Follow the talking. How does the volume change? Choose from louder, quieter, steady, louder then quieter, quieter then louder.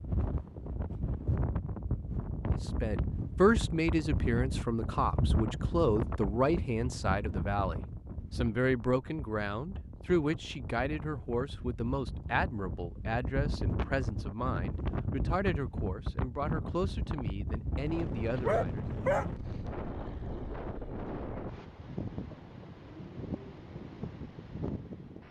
quieter.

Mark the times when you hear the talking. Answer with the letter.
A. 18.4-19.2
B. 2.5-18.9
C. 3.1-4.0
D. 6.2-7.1
B.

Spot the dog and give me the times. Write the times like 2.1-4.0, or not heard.
18.4-19.2.